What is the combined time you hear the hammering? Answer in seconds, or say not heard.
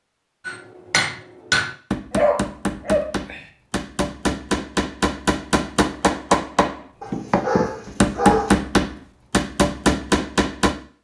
10 s.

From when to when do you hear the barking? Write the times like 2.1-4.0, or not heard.
2.1-3.4, 7.0-8.6.